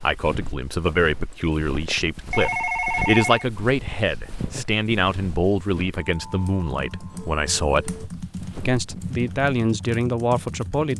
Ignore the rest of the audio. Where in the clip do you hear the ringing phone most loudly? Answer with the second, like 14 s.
3 s.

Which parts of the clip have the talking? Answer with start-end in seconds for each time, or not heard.
0.0-8.0, 8.7-10.9.